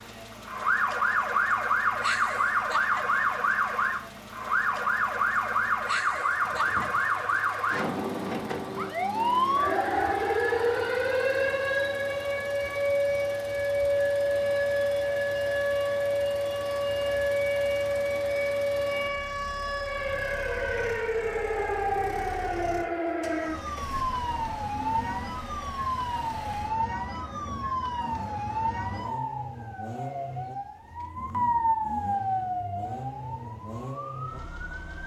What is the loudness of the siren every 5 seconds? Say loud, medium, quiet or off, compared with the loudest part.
loud, loud, loud, loud, loud, medium, medium.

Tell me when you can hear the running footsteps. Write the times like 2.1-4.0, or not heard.
not heard.